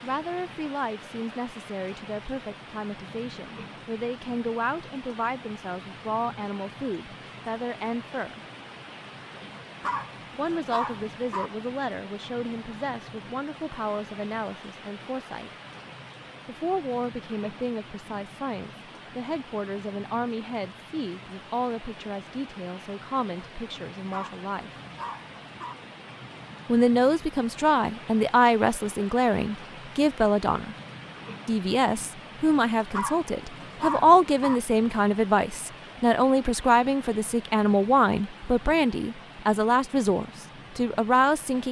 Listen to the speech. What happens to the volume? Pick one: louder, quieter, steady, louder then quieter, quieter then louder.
louder.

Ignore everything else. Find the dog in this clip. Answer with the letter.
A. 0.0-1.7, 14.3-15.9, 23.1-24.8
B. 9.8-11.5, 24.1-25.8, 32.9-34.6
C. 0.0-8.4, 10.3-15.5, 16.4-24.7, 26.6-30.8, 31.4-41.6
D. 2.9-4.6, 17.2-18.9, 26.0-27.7
B.